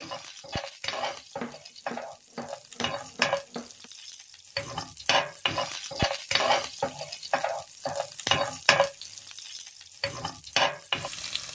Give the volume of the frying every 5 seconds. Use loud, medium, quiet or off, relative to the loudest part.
medium, loud, loud.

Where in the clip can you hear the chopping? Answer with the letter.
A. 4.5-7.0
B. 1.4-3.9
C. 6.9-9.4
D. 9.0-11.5
B.